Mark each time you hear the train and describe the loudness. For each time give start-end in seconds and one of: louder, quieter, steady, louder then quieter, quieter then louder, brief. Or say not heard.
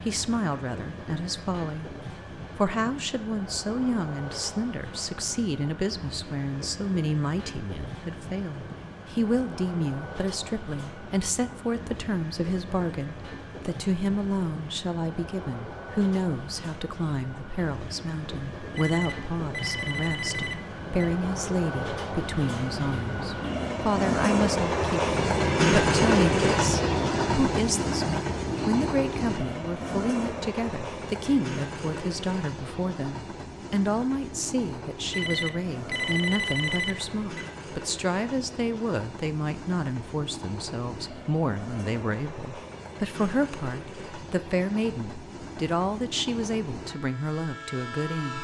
0.0-48.3 louder then quieter.